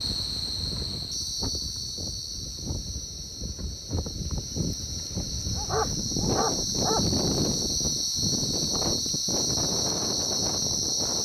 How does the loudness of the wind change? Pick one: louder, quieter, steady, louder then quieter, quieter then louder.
louder.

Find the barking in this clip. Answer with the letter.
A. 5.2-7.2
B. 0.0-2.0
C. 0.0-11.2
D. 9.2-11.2
A.